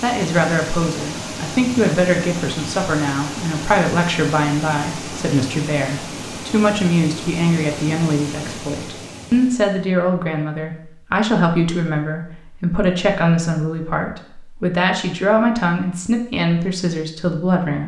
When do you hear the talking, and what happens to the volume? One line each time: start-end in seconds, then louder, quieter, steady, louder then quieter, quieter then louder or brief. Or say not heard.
0.0-17.8 steady.